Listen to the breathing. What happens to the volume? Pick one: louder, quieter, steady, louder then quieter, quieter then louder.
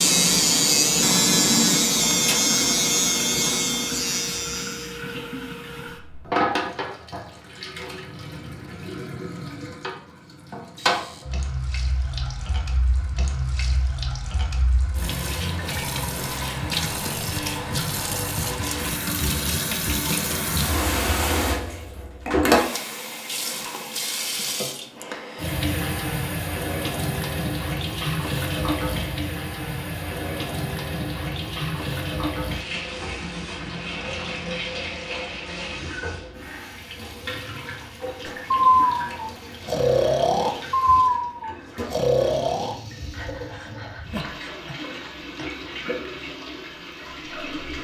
quieter.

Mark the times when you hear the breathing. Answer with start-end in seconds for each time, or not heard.
38.2-45.8.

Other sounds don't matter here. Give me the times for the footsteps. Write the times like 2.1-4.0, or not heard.
not heard.